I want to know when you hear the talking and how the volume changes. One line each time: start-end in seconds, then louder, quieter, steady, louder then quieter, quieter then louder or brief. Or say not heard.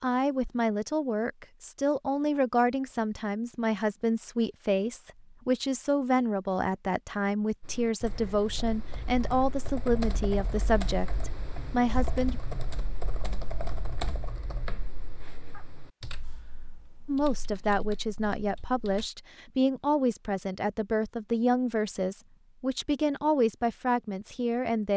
0.0-12.4 steady
17.1-24.9 steady.